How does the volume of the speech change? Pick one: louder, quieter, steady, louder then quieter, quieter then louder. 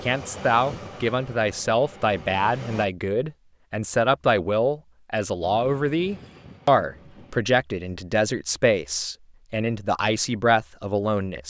steady.